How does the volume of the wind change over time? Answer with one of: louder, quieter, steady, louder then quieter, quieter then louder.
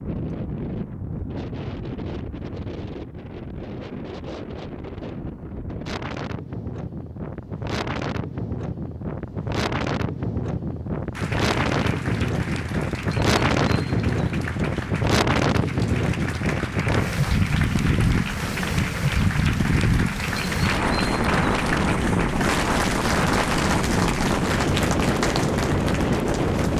louder.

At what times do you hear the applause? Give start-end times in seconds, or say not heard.
11.1-26.7.